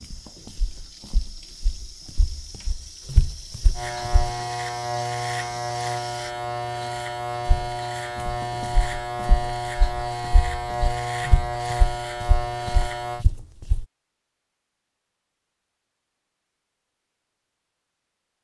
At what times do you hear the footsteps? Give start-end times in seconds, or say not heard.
0.0-4.3, 7.5-13.8.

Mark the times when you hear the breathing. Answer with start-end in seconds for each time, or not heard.
not heard.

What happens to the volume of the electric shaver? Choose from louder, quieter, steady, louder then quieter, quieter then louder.
steady.